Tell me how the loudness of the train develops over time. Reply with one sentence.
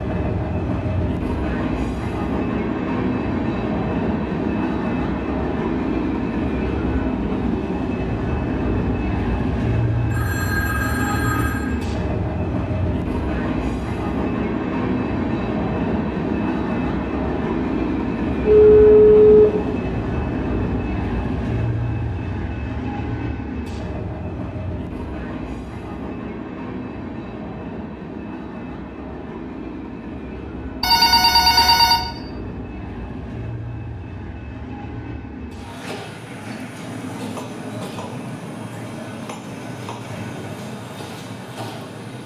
The volume of the train goes down.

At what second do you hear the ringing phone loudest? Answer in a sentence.
The volume of the ringing phone peaks at 19 seconds.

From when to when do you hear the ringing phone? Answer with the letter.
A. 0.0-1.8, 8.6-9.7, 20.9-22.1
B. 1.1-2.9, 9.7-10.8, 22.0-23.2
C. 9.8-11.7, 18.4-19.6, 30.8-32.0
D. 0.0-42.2
C.